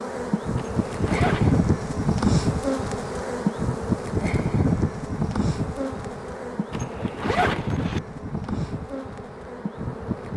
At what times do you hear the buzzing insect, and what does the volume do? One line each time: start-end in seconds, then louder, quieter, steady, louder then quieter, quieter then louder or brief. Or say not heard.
0.0-10.3 quieter.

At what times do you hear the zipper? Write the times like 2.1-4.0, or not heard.
0.6-1.6, 6.7-8.0.